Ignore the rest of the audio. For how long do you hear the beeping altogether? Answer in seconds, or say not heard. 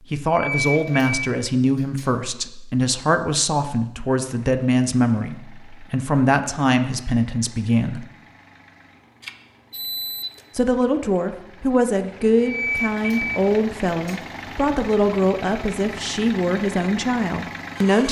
5 s.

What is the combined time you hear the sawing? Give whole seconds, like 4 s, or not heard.
not heard.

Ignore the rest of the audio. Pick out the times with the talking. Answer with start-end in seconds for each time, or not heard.
0.1-8.1, 10.6-18.0.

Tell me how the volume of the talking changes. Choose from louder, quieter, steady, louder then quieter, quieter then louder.
steady.